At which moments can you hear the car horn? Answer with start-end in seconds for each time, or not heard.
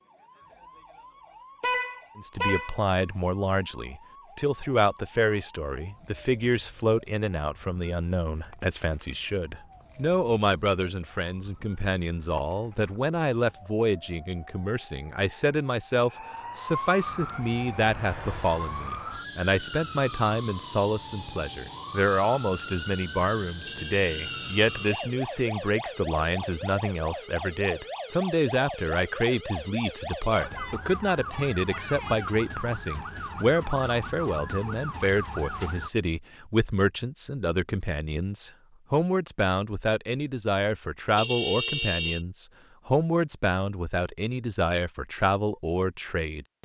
1.6-2.9, 23.6-25.1, 41.1-42.2.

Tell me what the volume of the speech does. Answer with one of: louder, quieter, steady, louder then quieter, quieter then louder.
steady.